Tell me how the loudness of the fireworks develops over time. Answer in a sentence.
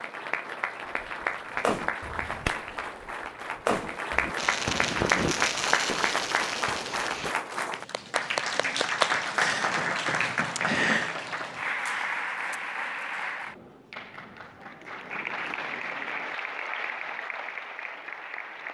The loudness of the fireworks goes up, then down.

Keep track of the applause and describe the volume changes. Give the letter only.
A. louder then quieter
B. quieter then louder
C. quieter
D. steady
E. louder
A.